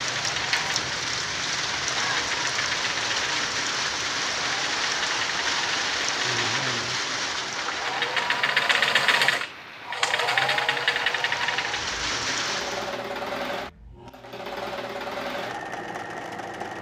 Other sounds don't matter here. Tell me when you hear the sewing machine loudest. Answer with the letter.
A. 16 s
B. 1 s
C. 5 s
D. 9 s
D.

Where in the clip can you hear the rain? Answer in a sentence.
The rain can be heard from 0.0 to 13.0 s.